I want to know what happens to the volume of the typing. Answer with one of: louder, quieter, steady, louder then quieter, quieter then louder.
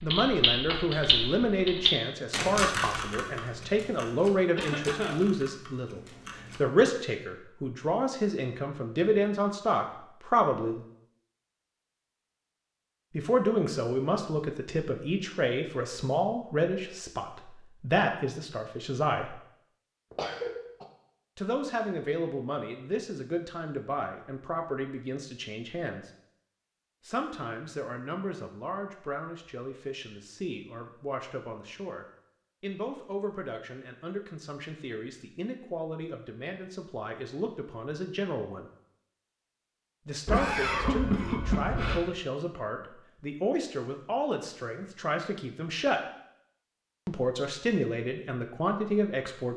quieter.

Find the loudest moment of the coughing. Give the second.
41 s.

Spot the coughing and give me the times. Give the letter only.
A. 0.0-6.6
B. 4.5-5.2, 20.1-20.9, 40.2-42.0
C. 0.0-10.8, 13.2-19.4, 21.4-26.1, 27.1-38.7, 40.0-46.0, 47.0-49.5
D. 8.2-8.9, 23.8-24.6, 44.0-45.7
B.